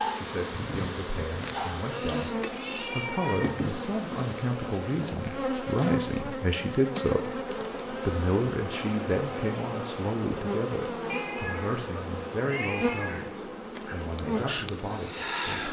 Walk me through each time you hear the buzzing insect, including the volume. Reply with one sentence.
You can hear the buzzing insect from 0.0 to 15.6 s, at a steady volume.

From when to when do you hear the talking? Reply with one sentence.
The talking can be heard from 0.1 to 15.6 s.